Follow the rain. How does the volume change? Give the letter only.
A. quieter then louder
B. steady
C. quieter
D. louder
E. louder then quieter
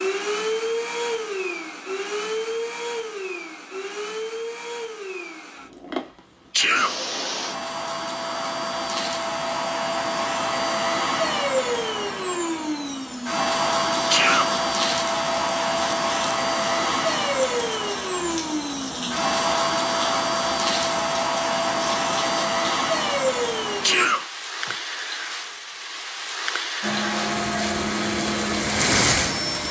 D.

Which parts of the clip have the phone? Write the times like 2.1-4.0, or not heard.
not heard.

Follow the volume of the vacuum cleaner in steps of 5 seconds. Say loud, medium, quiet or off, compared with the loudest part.
medium, medium, loud, loud, loud, loud.